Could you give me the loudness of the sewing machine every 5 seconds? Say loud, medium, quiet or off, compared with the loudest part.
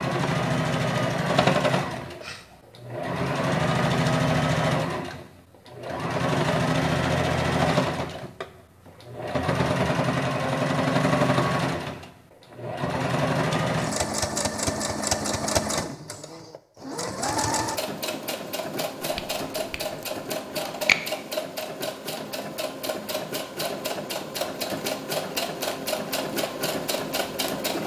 loud, loud, loud, medium, medium, medium.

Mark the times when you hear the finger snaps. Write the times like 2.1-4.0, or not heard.
19.1-20.9.